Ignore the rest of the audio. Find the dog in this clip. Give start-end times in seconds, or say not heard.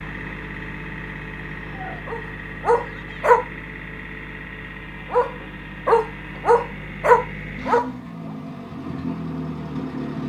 1.6-3.5, 5.1-7.9.